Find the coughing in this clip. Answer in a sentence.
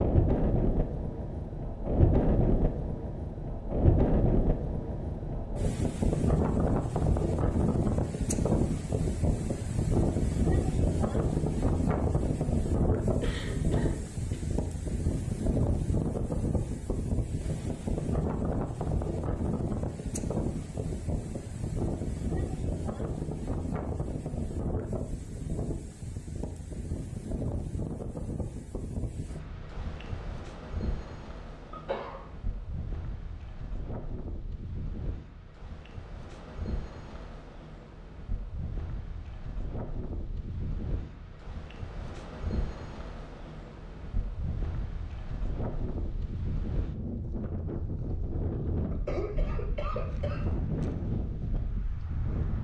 The coughing can be heard from 13.2 to 14.6 s, from 31.7 to 32.2 s and from 48.9 to 50.5 s.